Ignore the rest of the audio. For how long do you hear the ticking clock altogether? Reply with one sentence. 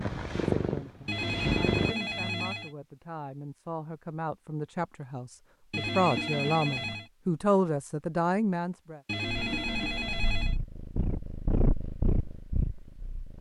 The ticking clock can't be heard in this clip.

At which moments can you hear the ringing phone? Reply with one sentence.
The ringing phone can be heard from 1.1 to 2.7 s, from 5.7 to 7.1 s and from 9.1 to 10.6 s.